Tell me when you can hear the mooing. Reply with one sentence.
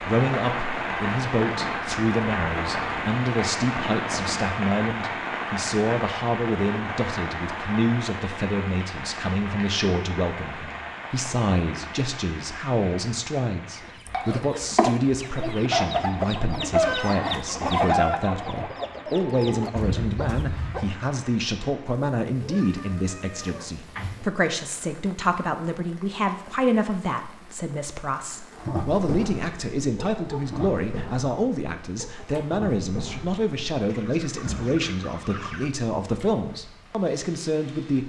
The mooing can't be heard in this clip.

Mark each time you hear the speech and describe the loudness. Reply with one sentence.
You can hear the speech from 0.1 to 38.0 s, at a steady volume.